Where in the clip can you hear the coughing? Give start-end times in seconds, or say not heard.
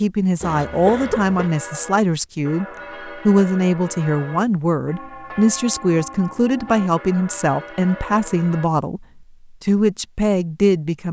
0.4-1.5.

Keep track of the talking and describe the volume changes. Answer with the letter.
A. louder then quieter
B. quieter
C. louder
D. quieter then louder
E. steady
E.